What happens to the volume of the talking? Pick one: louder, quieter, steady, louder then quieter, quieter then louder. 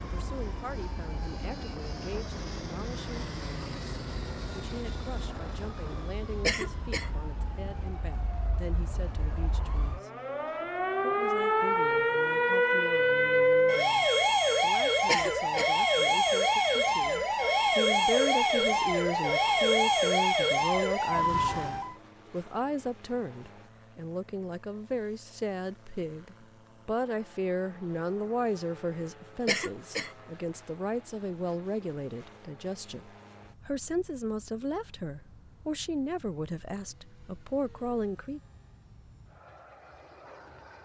louder.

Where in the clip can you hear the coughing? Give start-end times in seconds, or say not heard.
6.5-7.1, 15.1-15.8, 29.4-30.1.